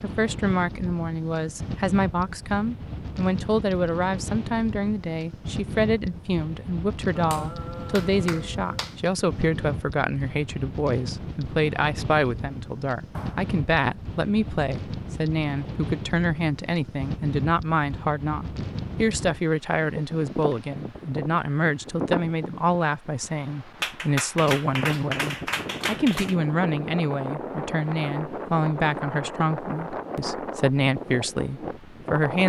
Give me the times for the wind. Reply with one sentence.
You can hear the wind from 0.0 to 32.4 s.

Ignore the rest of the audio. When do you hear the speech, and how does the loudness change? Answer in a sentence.
The speech can be heard from 0.0 to 32.4 s, at a steady volume.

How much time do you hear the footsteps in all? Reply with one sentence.
The footsteps can't be heard in this clip.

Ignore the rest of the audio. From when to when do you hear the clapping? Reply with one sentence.
You can hear the clapping from 7.2 to 8.9 s, from 13.1 to 13.5 s and from 23.8 to 26.4 s.